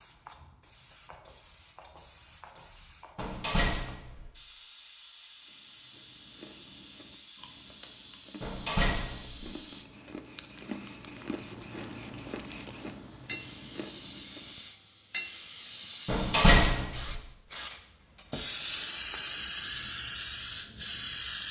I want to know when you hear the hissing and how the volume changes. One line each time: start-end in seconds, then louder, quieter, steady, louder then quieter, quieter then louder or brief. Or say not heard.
0.0-21.4 louder.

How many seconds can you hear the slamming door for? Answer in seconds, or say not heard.
3 s.